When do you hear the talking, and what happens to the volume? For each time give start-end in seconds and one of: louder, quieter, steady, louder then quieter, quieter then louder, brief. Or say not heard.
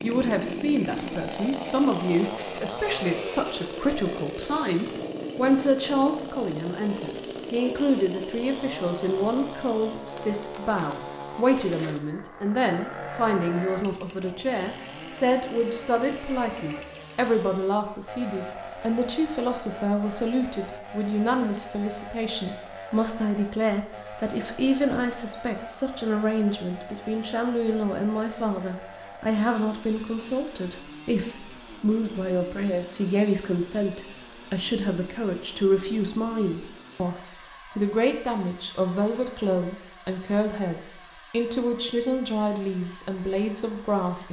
0.0-44.2 steady.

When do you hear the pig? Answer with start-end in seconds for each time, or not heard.
not heard.